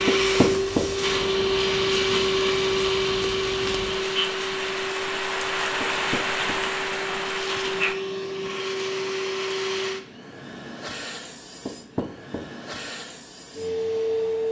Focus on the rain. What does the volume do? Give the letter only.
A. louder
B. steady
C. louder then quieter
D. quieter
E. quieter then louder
A.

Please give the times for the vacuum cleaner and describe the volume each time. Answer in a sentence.
The vacuum cleaner can be heard from 0.0 to 14.4 s, getting quieter.